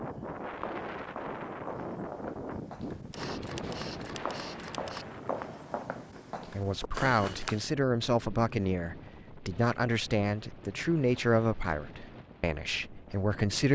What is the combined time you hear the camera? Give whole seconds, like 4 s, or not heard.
2 s.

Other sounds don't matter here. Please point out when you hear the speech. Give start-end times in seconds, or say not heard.
6.5-13.7.